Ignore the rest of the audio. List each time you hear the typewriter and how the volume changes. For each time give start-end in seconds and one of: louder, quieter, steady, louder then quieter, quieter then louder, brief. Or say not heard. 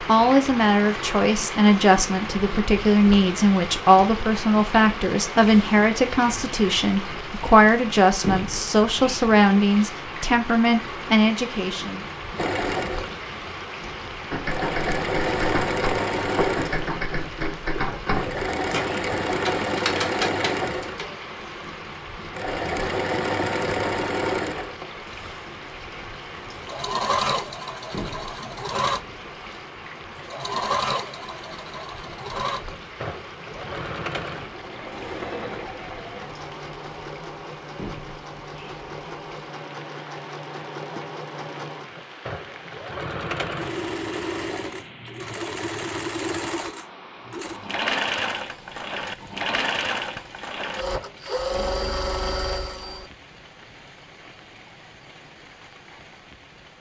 14.3-21.1 steady.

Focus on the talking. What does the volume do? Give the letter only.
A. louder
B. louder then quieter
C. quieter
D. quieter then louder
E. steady
E.